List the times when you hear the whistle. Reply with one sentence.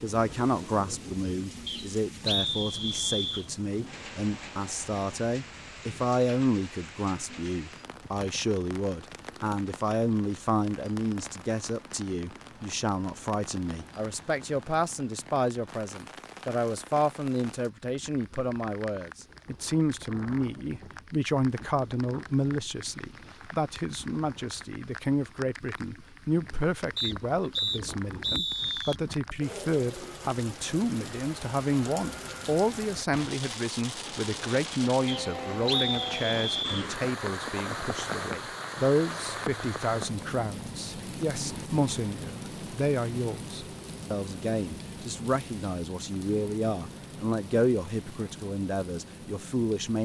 You can hear the whistle from 1.6 to 3.5 s, from 26.9 to 28.9 s and from 35.0 to 36.9 s.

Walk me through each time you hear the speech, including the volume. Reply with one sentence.
You can hear the speech from 0.0 to 50.0 s, at a steady volume.